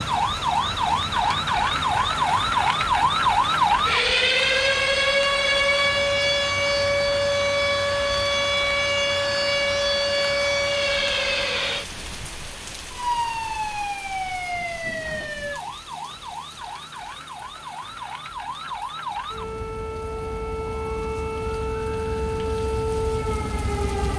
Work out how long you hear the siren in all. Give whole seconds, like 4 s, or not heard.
24 s.